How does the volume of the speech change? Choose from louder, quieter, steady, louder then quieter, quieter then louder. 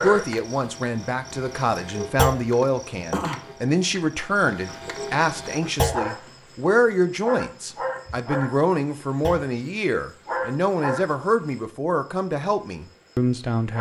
steady.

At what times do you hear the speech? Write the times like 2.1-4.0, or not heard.
0.0-13.7.